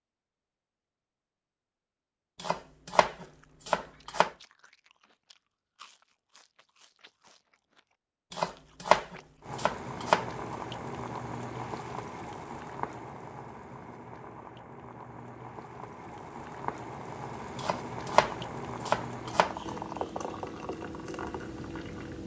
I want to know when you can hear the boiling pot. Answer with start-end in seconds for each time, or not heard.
9.4-22.2.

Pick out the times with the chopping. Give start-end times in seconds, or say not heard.
2.4-4.3, 8.3-10.2, 17.6-19.6.